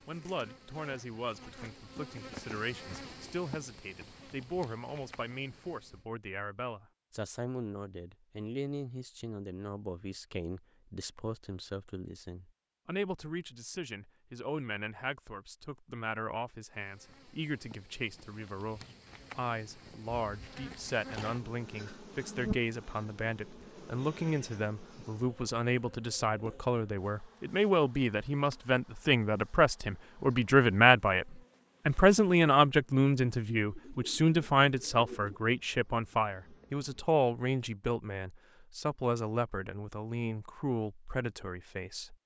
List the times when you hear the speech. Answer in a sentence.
You can hear the speech from 0.1 to 42.1 s.